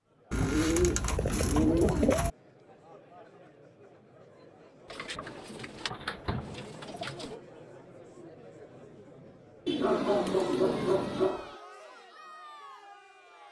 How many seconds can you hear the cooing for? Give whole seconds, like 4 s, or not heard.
6 s.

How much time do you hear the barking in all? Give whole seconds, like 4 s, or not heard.
2 s.